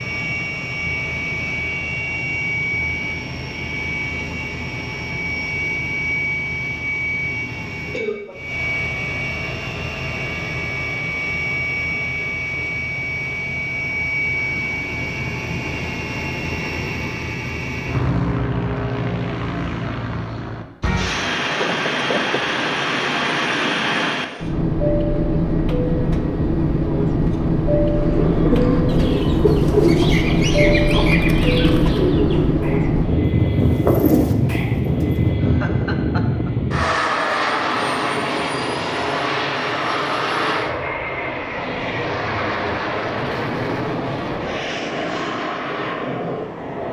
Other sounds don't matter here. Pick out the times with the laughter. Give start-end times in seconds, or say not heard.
7.9-8.5, 21.5-22.4, 35.4-36.5.